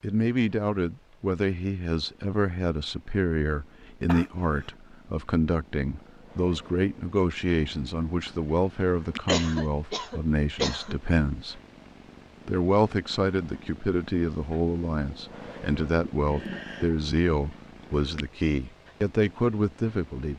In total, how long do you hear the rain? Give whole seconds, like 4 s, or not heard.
not heard.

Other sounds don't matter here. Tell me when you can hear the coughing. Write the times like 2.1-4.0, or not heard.
4.0-4.8, 9.2-10.9, 16.0-16.9.